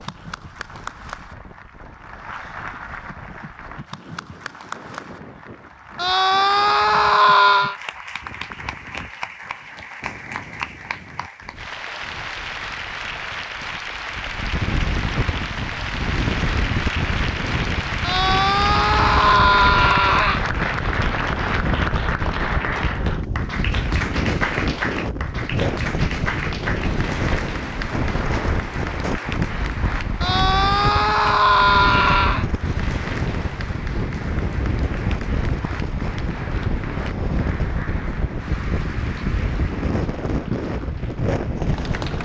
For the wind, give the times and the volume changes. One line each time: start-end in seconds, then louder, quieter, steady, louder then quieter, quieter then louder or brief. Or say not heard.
0.0-42.2 louder.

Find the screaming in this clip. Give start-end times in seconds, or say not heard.
6.0-7.8, 18.0-20.4, 30.2-32.5.